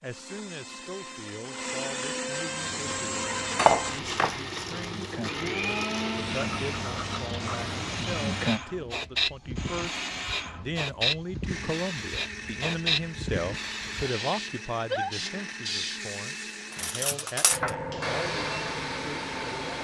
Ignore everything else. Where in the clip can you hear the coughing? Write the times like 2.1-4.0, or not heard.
not heard.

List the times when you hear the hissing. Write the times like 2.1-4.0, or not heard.
2.5-19.7.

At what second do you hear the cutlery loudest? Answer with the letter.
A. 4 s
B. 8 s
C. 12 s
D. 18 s
A.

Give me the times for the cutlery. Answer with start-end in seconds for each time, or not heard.
3.5-4.4, 16.8-17.7.